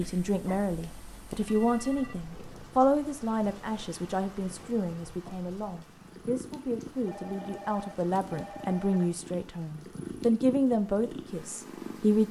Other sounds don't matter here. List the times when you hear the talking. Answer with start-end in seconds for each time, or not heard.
0.0-12.2.